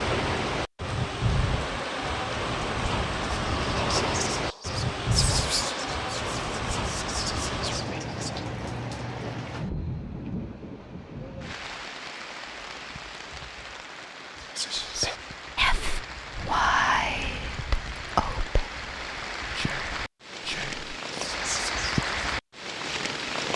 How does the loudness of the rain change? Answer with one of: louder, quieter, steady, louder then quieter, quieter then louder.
quieter then louder.